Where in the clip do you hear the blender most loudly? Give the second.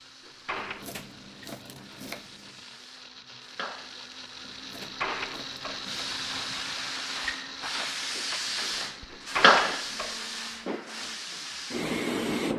6 s.